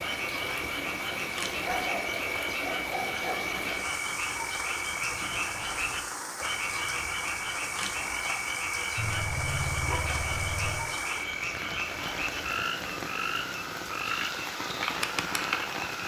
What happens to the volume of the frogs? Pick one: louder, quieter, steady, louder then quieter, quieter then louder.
steady.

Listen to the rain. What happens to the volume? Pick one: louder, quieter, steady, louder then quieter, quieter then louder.
steady.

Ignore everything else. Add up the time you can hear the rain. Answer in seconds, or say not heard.
16 s.